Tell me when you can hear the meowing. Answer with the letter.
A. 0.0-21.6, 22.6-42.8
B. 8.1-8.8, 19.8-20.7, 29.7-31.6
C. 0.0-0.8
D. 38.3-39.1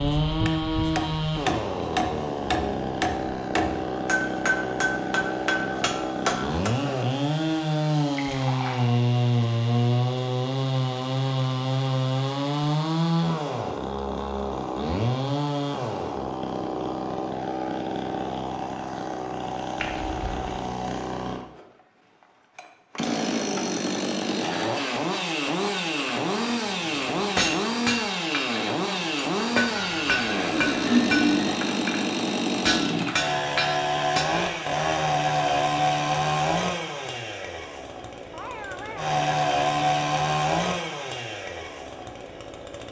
D.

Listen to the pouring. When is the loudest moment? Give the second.
31 s.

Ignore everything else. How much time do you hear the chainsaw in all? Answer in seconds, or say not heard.
42 s.